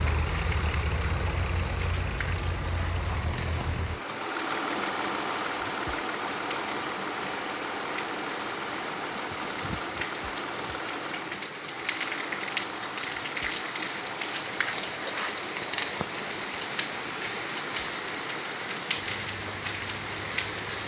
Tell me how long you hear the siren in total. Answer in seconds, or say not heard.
not heard.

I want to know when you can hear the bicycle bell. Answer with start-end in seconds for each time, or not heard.
17.9-18.3.